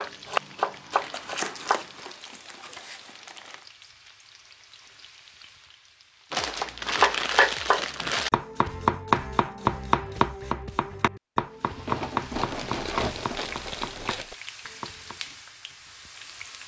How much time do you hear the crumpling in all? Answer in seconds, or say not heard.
7 s.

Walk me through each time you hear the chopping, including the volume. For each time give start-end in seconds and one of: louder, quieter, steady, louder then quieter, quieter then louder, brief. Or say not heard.
0.0-2.1 brief
6.5-15.2 quieter.